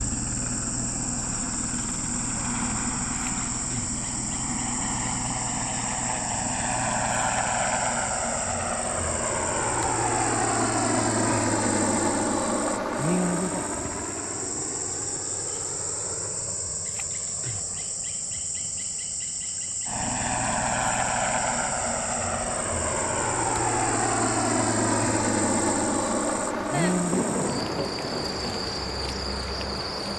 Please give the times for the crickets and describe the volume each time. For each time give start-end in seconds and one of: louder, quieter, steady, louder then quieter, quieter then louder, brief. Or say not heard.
0.0-30.1 steady.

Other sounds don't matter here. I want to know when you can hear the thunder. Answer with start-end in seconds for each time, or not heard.
26.7-28.7.